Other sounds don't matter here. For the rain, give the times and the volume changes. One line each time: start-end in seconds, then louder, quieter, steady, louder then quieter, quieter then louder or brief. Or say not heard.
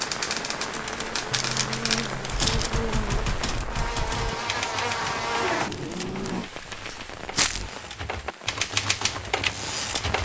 0.0-10.1 quieter.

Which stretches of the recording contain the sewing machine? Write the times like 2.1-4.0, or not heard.
not heard.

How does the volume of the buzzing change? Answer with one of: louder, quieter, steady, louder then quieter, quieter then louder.
louder.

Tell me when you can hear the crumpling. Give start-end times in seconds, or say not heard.
1.3-2.7, 5.7-7.7.